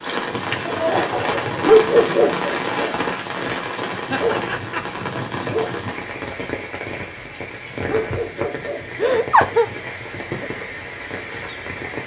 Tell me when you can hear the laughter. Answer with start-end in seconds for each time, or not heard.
0.7-1.7, 4.1-5.0, 8.9-9.7.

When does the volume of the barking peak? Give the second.
2 s.